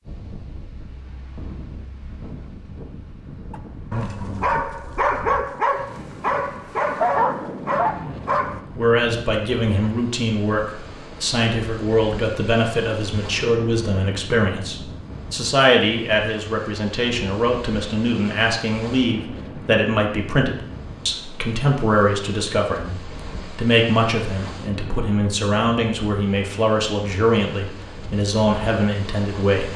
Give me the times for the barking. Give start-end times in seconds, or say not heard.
3.5-8.6.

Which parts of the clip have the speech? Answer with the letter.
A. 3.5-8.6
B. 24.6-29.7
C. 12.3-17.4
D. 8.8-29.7
D.